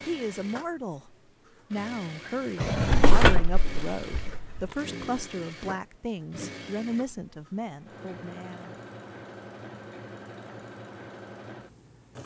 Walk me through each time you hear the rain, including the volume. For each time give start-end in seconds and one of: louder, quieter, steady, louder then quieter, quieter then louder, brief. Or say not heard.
not heard.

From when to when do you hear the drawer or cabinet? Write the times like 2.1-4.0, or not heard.
2.6-4.6.